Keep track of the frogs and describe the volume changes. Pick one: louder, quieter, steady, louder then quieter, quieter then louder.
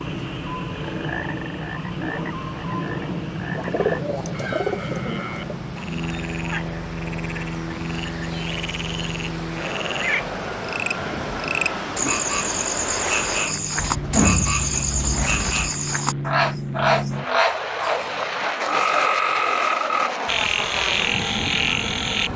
louder.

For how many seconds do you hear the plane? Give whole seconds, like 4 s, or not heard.
22 s.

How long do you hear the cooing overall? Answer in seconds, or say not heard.
4 s.